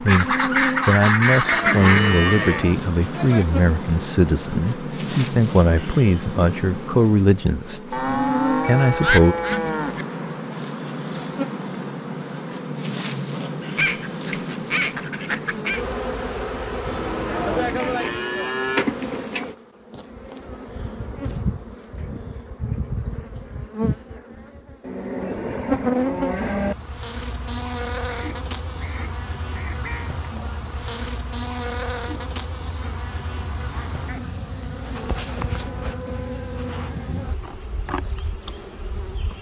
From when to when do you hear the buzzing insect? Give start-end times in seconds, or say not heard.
0.0-39.3.